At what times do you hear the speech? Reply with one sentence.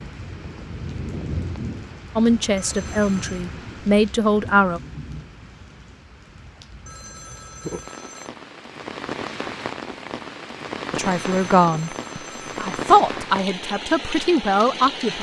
The speech can be heard from 2.1 to 4.8 s and from 10.9 to 15.1 s.